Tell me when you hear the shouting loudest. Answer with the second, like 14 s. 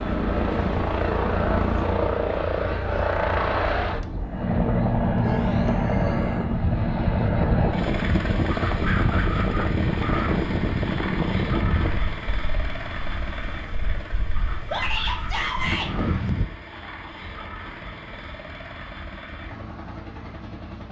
15 s.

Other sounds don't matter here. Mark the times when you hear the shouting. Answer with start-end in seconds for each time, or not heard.
5.2-6.5, 14.7-15.9.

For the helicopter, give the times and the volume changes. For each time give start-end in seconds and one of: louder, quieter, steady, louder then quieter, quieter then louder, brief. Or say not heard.
0.0-20.8 quieter.